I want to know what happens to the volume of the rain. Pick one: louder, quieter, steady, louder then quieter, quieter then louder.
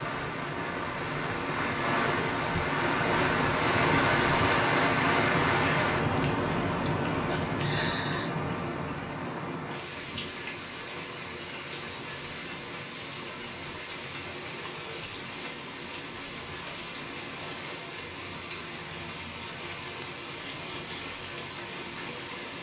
quieter.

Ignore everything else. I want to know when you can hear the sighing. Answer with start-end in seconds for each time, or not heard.
6.8-8.3.